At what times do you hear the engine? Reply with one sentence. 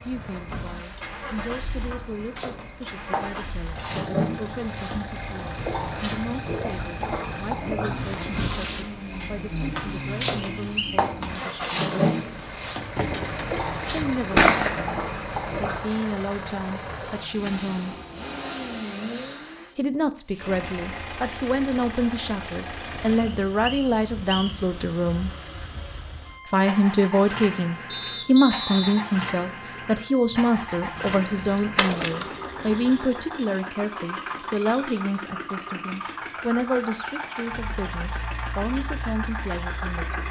You can hear the engine from 0.0 to 40.2 s.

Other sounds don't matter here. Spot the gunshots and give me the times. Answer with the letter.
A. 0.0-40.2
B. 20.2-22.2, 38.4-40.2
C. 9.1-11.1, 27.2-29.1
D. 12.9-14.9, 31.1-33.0
D.